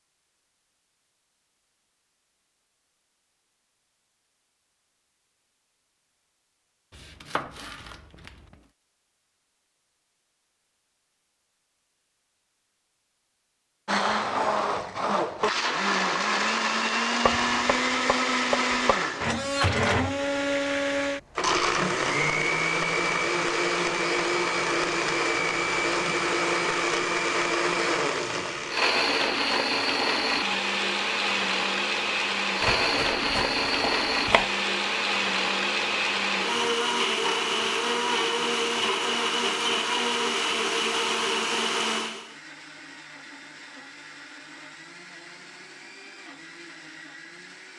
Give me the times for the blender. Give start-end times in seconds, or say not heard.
13.8-47.7.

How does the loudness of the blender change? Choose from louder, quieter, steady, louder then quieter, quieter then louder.
quieter.